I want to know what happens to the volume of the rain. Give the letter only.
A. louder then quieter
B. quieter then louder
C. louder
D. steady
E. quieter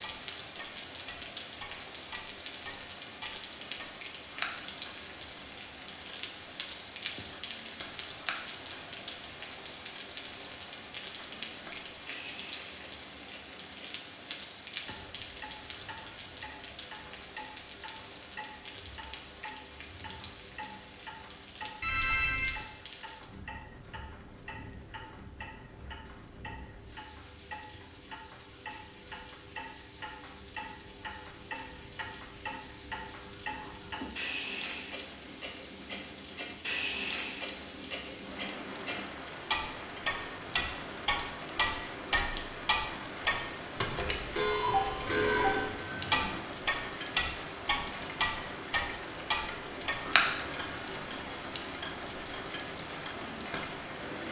B.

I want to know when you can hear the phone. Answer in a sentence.
The phone can be heard from 21.8 to 22.6 s and from 45.0 to 46.4 s.